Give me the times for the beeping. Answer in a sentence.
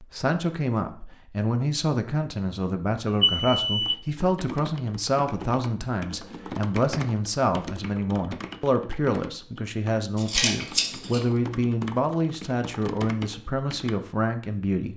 You can hear the beeping from 3.2 to 4.0 s.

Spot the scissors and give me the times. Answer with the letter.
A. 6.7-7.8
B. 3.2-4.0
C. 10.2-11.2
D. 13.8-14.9
C.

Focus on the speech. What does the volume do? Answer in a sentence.
The loudness of the speech stays about the same.